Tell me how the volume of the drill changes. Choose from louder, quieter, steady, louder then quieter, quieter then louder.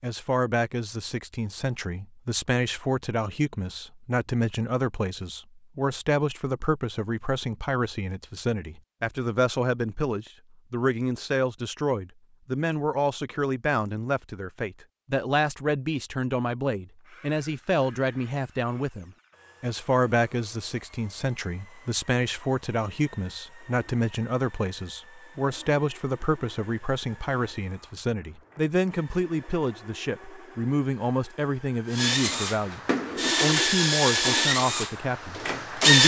louder.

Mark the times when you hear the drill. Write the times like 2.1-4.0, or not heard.
16.9-36.0.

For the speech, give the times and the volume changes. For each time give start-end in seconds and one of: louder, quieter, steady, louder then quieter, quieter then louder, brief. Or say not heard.
0.0-36.0 steady.